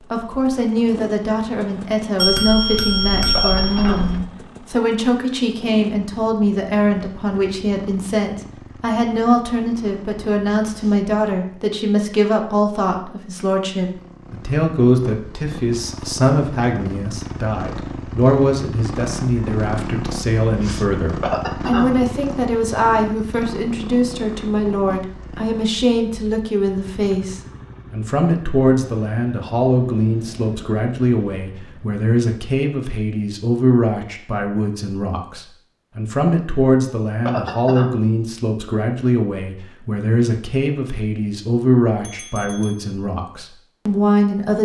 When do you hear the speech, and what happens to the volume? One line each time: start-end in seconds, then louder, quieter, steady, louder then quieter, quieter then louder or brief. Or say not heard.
0.1-44.6 steady.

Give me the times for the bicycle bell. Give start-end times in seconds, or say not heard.
2.1-4.2, 42.0-42.9.